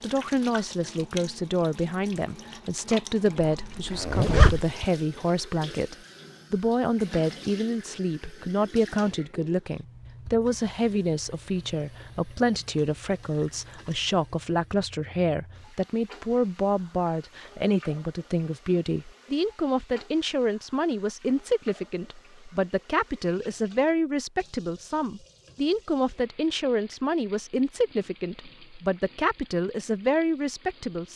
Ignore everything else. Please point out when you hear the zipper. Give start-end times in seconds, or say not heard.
3.4-4.8.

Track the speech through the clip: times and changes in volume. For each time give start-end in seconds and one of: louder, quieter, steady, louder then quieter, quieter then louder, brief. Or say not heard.
0.0-31.1 steady.